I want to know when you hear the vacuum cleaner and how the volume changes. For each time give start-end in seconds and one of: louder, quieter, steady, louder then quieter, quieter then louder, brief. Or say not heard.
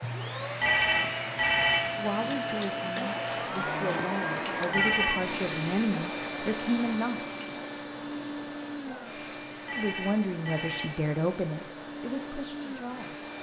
0.0-13.3 quieter.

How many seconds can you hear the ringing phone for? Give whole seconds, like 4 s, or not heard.
3 s.